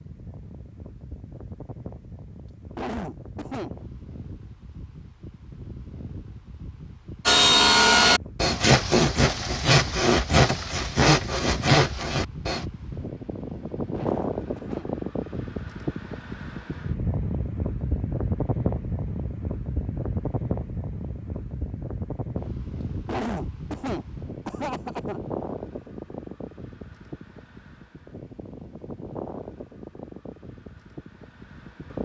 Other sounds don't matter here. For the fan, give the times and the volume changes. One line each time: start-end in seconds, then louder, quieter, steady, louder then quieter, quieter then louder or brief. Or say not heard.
0.0-32.0 louder then quieter.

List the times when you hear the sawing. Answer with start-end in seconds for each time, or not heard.
7.2-12.7.